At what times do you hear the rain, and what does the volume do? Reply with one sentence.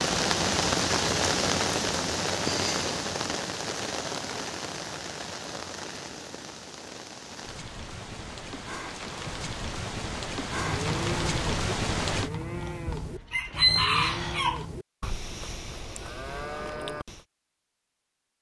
The rain can be heard from 0.0 to 12.3 s, getting quieter then louder.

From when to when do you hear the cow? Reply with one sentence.
You can hear the cow from 10.5 to 17.2 s.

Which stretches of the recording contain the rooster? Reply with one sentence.
The rooster can be heard from 12.8 to 14.7 s.